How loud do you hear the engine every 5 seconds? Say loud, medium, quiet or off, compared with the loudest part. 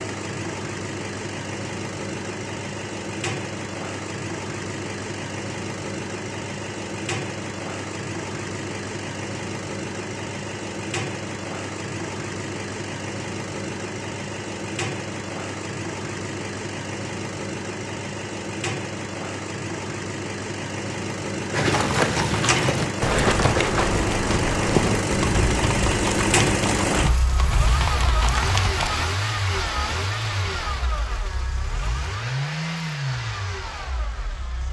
medium, medium, medium, medium, loud, loud, medium.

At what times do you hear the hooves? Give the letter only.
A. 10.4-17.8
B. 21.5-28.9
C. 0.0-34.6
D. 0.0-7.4
B.